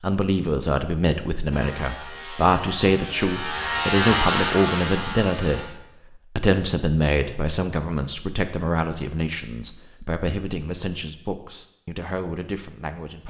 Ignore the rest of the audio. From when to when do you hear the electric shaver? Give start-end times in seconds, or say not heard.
1.5-5.7.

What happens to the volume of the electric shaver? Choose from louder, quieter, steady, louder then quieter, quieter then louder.
louder then quieter.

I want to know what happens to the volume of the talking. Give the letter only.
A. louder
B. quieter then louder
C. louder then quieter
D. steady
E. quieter
E.